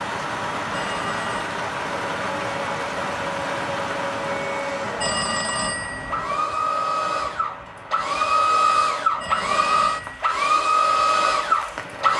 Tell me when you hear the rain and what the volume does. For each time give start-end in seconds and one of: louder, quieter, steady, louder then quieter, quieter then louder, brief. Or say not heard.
0.0-12.1 quieter.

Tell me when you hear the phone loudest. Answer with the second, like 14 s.
5 s.